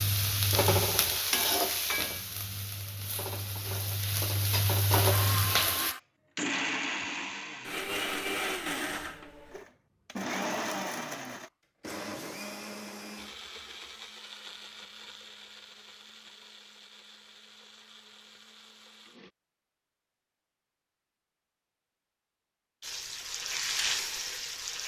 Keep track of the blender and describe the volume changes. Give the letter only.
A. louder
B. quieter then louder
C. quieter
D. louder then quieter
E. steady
C.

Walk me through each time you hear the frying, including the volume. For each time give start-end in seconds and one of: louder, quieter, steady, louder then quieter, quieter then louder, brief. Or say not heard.
0.0-6.0 quieter then louder
22.8-24.8 brief.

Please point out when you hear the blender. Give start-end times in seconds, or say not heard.
5.1-19.3.